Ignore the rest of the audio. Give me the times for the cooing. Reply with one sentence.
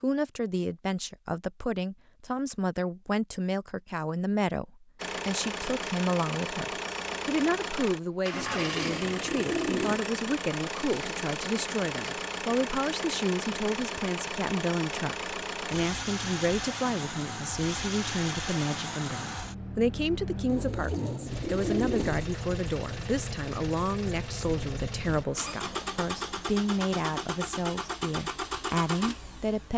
The cooing can be heard from 8.3 to 10.0 s and from 20.4 to 22.3 s.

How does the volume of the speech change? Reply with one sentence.
The loudness of the speech stays about the same.